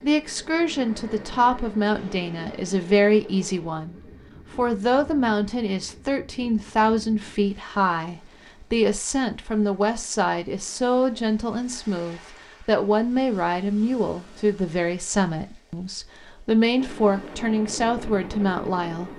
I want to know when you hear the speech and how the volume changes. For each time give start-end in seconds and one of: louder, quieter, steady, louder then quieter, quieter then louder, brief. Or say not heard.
0.0-19.1 steady.